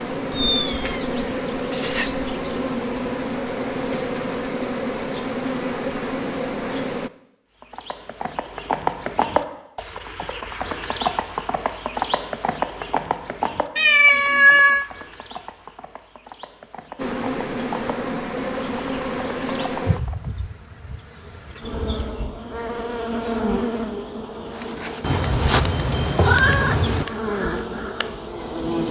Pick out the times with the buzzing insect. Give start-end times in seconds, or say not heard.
0.0-7.1, 16.9-28.8.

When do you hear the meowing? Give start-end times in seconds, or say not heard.
0.3-2.5, 13.8-14.8, 25.0-27.1.